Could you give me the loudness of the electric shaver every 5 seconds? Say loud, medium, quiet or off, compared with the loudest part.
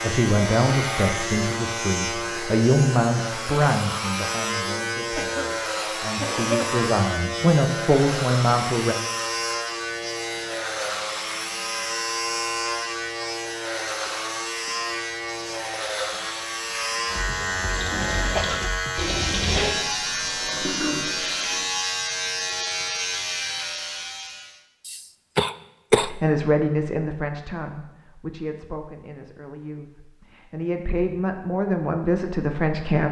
loud, loud, loud, loud, loud, off, off.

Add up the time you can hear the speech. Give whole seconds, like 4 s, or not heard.
16 s.